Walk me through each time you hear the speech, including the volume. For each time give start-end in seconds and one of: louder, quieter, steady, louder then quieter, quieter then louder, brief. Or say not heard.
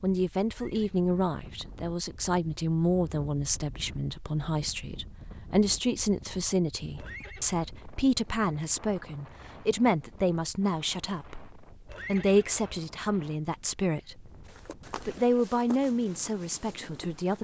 0.0-14.3 steady
14.9-17.3 brief.